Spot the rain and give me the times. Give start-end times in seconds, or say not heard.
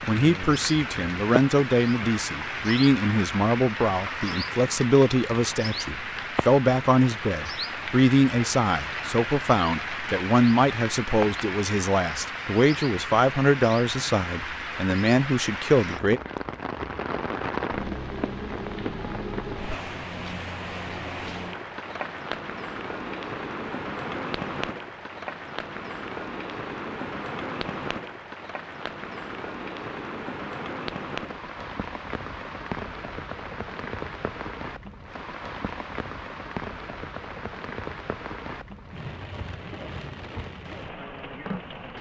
0.0-41.9.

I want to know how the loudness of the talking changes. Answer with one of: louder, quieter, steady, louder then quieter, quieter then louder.
steady.